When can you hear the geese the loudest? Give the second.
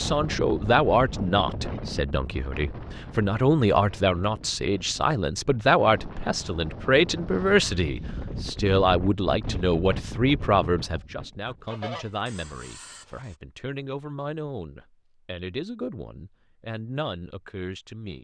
12 s.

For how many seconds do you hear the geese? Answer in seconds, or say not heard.
2 s.